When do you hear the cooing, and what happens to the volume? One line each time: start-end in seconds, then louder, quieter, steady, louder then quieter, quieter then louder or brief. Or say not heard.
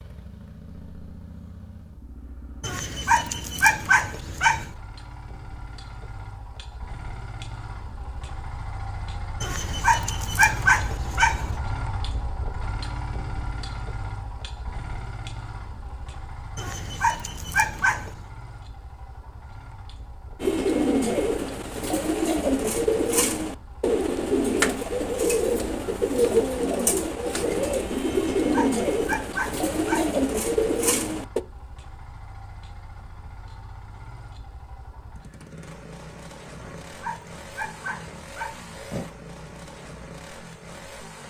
20.4-31.4 steady.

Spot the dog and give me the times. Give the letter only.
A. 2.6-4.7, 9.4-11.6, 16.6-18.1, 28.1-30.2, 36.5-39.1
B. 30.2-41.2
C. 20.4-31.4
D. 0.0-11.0
A.